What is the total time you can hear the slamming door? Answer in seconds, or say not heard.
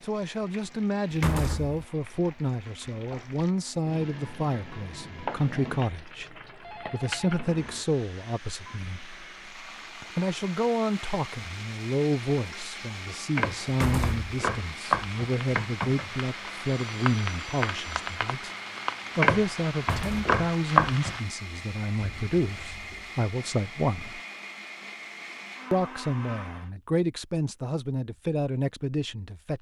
2 s.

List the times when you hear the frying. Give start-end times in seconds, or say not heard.
0.0-21.2.